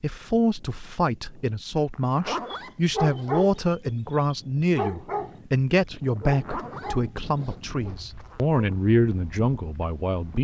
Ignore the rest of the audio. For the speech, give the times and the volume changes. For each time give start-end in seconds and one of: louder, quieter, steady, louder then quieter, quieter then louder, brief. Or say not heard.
0.0-10.3 steady.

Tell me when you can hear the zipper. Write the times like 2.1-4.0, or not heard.
1.9-3.4, 6.2-8.4.